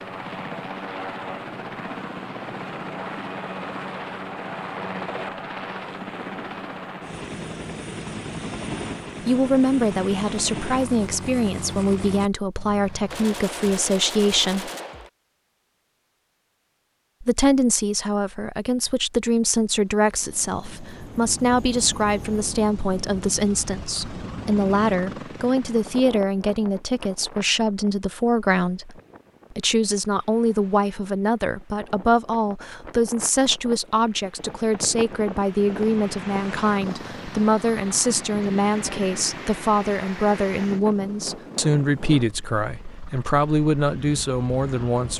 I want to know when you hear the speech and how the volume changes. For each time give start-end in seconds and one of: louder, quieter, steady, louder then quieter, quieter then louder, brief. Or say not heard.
9.2-14.7 steady
17.2-45.1 steady.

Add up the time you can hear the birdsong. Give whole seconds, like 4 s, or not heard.
not heard.